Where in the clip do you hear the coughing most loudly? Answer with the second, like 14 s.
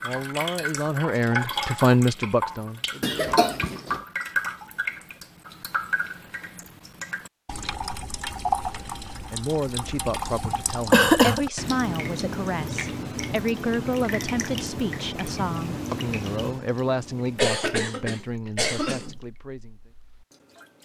11 s.